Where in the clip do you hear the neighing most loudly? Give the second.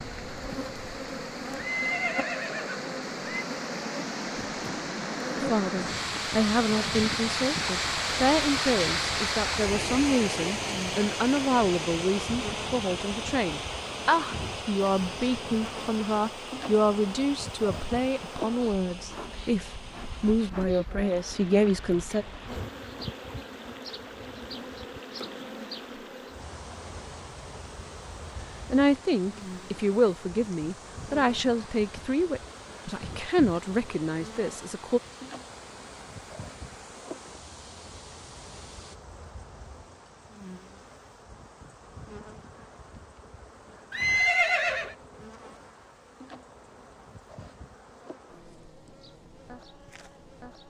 44 s.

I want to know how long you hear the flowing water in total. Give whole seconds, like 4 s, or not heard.
39 s.